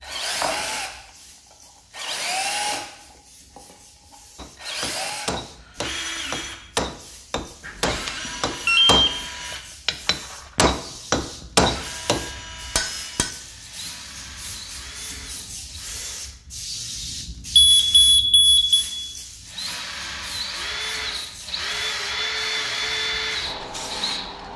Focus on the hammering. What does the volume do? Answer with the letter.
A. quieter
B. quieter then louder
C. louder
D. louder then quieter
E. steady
C.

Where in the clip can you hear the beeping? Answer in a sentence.
The beeping can be heard from 7.7 to 9.2 s and from 17.6 to 18.8 s.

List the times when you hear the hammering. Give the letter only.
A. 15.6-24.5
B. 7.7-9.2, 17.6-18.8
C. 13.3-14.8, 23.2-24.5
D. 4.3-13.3
D.